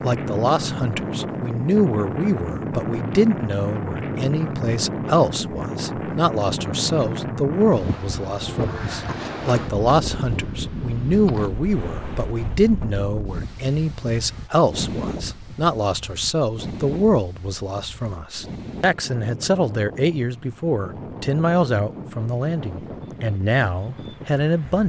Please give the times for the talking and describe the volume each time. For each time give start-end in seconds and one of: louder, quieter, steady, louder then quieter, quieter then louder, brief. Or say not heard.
0.0-24.8 steady.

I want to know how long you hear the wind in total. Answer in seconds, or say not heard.
25 s.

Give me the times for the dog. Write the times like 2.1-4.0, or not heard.
not heard.